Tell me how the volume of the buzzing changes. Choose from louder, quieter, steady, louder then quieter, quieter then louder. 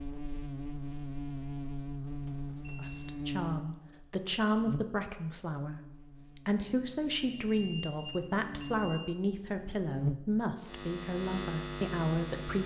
quieter then louder.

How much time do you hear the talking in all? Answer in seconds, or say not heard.
10 s.